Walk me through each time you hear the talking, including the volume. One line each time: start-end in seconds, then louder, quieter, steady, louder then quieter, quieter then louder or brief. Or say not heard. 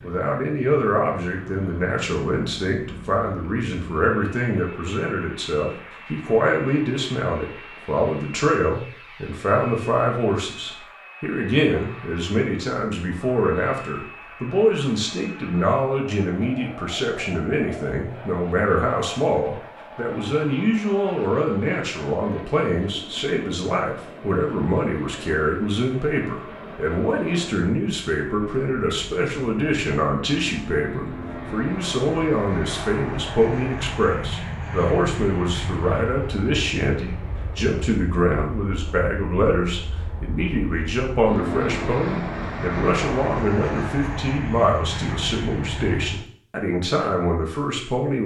0.0-48.2 steady.